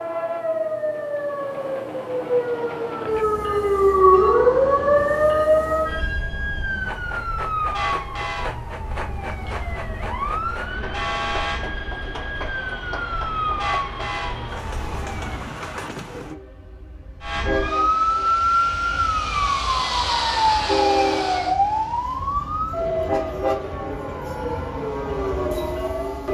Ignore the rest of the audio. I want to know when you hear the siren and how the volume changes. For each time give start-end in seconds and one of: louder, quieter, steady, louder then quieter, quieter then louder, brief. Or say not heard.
0.0-15.6 louder then quieter
17.2-26.2 quieter.